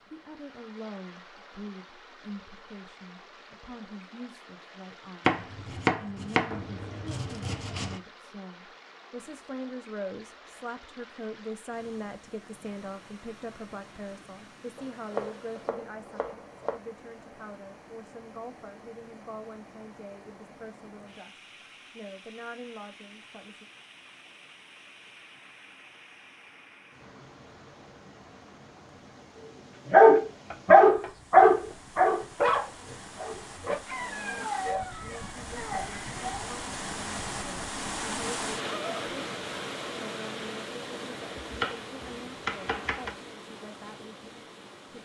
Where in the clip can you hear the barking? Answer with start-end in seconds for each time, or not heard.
29.9-36.5.